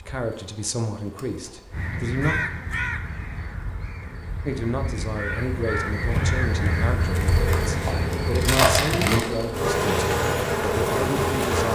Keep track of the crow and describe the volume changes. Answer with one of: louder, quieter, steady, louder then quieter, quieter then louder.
quieter then louder.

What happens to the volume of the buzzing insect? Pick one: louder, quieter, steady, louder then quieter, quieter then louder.
louder.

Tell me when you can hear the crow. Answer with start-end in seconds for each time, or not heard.
1.7-9.2.